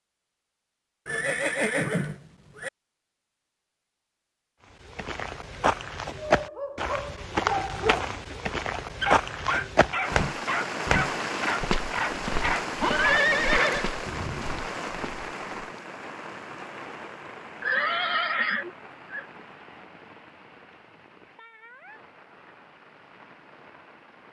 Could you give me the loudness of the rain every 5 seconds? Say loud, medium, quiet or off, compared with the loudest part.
off, off, loud, medium, quiet.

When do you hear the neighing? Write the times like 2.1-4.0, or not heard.
1.1-2.7, 12.8-13.9, 17.6-19.2.